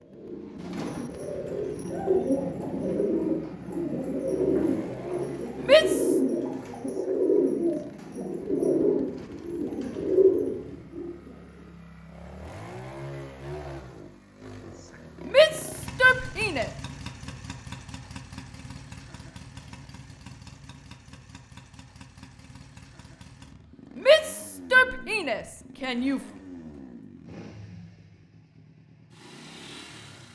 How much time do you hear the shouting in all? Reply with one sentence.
The shouting can be heard for 4 seconds in total.